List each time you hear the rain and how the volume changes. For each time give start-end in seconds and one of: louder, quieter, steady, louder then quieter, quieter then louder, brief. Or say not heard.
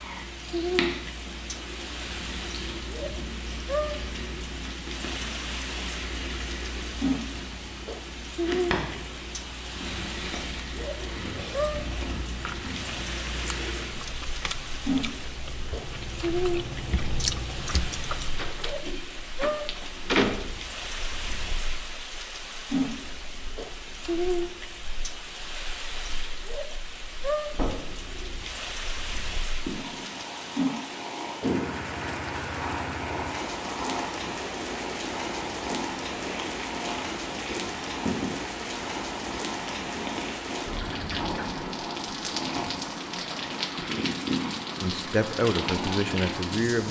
0.0-46.8 steady.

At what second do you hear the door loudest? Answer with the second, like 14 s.
20 s.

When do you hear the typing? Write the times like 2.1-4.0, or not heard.
not heard.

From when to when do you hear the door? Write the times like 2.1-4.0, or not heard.
18.4-20.4, 27.5-27.9.